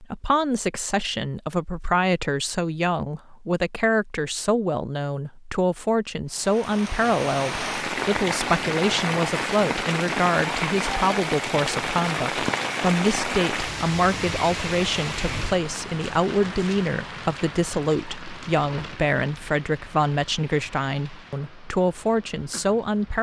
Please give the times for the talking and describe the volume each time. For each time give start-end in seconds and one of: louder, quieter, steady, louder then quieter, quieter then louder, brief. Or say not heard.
0.0-23.1 steady.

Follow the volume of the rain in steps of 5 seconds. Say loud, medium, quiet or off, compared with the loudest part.
off, loud, loud, medium, quiet.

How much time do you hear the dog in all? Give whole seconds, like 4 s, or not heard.
not heard.